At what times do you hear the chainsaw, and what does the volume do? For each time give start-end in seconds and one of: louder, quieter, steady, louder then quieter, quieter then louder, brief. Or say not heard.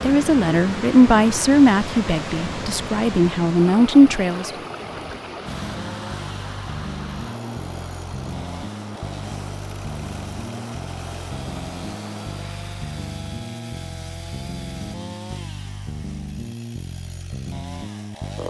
5.5-18.4 steady.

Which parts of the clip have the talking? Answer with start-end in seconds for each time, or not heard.
0.0-4.5.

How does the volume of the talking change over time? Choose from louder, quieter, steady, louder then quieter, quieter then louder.
quieter then louder.